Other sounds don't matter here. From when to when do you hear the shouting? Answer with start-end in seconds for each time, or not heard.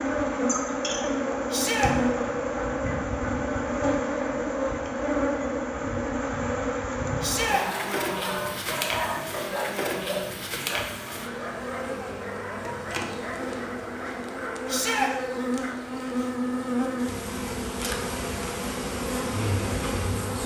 1.5-1.9, 7.2-7.7, 14.7-15.1.